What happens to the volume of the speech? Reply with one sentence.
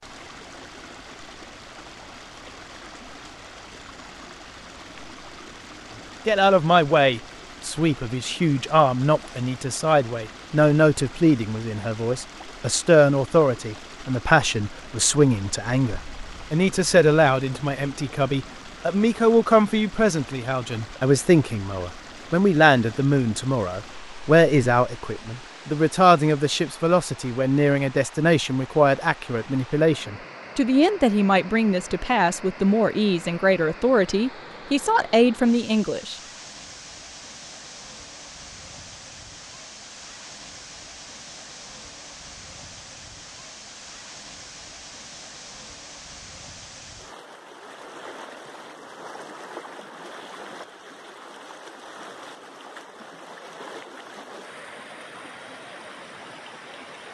The loudness of the speech stays about the same.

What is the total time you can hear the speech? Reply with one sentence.
You can hear the speech for 30 seconds altogether.